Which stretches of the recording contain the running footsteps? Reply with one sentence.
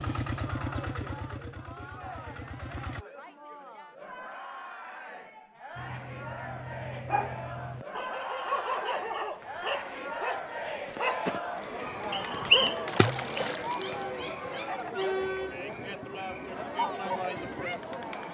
You can't hear the running footsteps here.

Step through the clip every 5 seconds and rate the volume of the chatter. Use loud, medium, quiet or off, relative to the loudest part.
medium, medium, loud, loud.